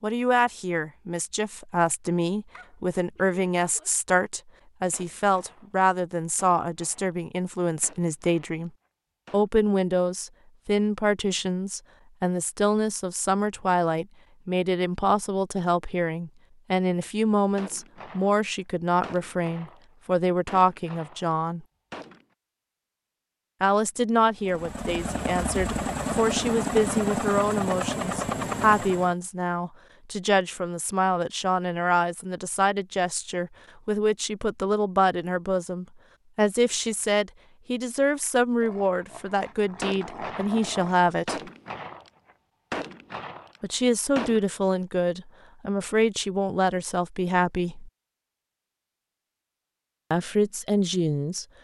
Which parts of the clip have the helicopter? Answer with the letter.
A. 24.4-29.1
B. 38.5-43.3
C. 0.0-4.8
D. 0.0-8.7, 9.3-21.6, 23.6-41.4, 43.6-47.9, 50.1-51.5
A.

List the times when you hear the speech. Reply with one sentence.
You can hear the speech from 0.0 to 8.7 s, from 9.3 to 21.6 s, from 23.6 to 41.4 s, from 43.6 to 47.9 s and from 50.1 to 51.5 s.